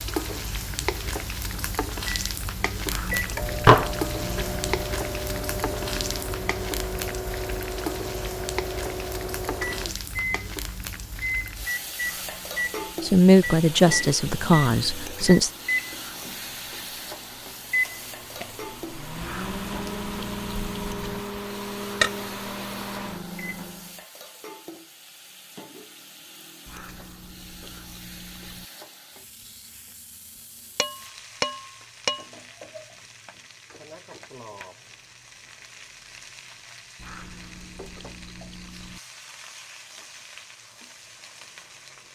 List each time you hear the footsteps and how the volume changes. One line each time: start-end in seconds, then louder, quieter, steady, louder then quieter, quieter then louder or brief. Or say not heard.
not heard.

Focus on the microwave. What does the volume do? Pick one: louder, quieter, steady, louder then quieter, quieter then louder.
steady.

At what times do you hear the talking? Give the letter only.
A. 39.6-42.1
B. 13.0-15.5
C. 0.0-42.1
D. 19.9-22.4
B.